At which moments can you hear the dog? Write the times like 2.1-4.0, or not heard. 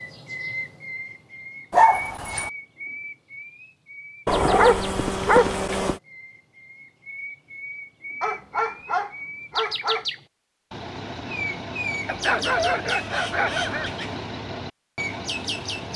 1.7-2.5, 4.2-6.0, 8.2-10.1, 12.1-13.9.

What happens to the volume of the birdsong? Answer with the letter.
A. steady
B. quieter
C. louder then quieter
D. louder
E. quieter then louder
E.